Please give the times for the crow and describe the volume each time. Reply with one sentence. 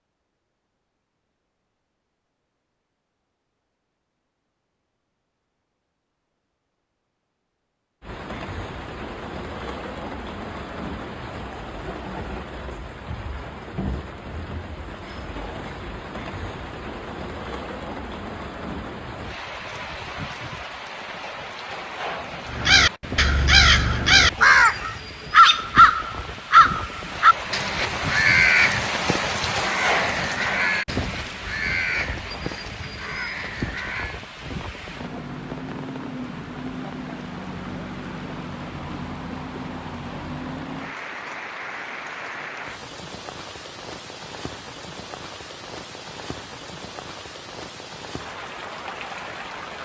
You can hear the crow from 22.4 to 34.2 s, getting quieter.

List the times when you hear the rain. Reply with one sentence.
You can hear the rain from 8.0 to 49.8 s.